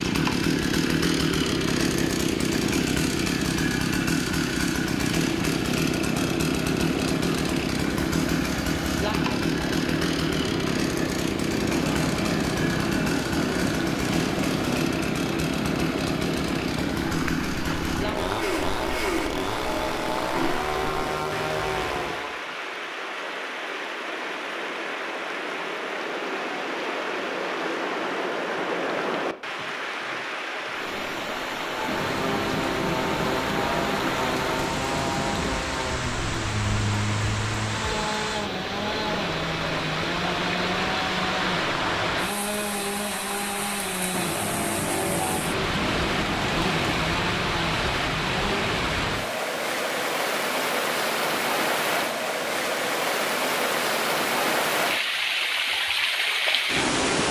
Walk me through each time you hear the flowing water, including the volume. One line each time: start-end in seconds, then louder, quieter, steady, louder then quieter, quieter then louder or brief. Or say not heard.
0.0-57.2 louder.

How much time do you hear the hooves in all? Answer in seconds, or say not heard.
not heard.